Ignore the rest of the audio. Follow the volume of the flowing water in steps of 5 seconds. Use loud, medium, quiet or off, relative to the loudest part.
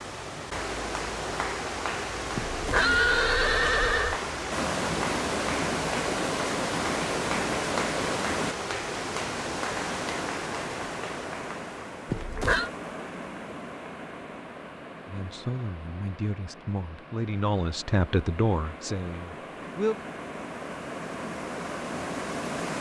loud, loud, medium, quiet, medium.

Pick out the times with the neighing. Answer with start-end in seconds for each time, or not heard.
2.4-4.2, 12.1-12.7.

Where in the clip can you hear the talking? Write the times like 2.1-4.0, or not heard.
15.1-20.1.